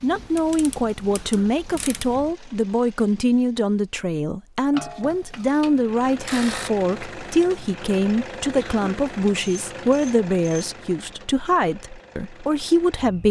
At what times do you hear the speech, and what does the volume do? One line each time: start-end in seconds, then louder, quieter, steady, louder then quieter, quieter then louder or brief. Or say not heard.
0.0-13.2 steady.